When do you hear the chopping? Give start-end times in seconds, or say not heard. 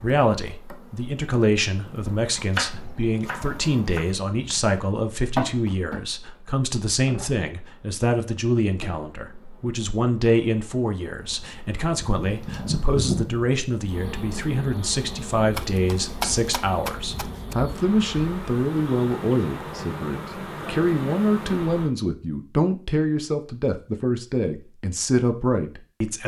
2.5-4.0, 15.6-17.6.